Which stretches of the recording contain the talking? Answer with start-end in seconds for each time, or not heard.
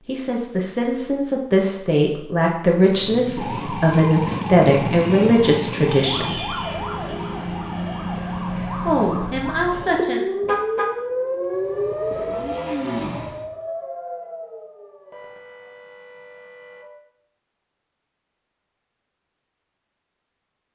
0.1-6.5, 8.8-10.2.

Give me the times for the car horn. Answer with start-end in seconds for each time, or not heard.
10.4-10.9.